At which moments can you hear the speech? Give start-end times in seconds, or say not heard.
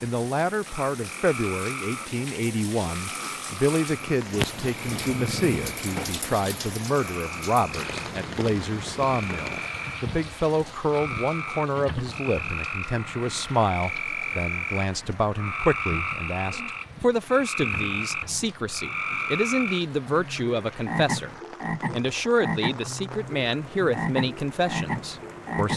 0.0-21.3, 21.9-25.7.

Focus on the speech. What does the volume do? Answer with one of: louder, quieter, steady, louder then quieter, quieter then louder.
steady.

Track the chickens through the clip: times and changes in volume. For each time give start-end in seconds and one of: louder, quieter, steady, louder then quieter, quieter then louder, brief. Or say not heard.
not heard.